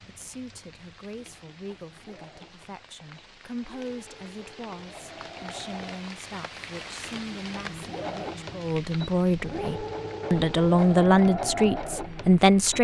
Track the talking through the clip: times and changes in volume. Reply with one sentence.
You can hear the talking from 0.0 to 12.8 s, getting louder.